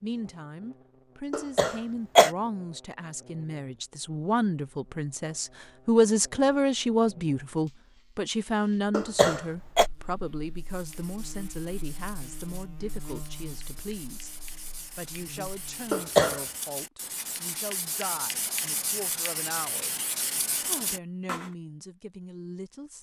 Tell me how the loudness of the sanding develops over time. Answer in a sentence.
The loudness of the sanding goes up.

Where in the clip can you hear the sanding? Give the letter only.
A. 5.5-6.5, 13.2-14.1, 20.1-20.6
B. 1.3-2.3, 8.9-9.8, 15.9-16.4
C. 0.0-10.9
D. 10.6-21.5
D.